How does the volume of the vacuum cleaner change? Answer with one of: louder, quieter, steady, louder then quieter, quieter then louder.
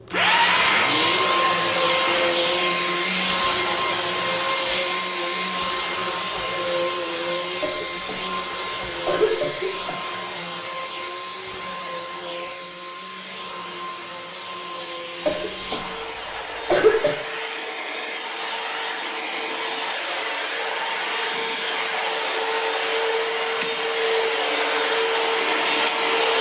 quieter then louder.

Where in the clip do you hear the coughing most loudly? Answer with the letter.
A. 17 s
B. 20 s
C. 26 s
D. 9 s
A.